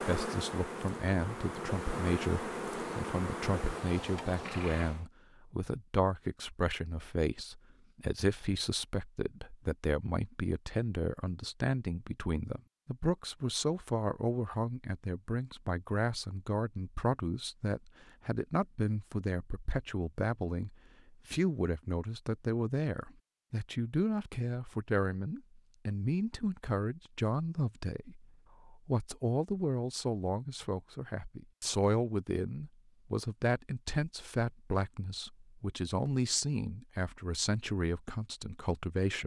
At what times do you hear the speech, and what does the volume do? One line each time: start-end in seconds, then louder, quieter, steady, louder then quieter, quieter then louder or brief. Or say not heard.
0.1-39.2 steady.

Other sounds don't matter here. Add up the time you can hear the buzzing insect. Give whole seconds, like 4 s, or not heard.
5 s.